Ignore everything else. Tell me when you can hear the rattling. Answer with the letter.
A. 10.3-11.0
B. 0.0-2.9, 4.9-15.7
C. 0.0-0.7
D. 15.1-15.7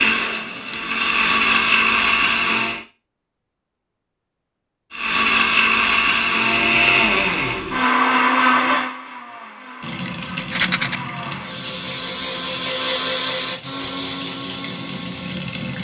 A.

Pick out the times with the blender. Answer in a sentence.
The blender can be heard from 0.0 to 2.9 s and from 4.9 to 15.7 s.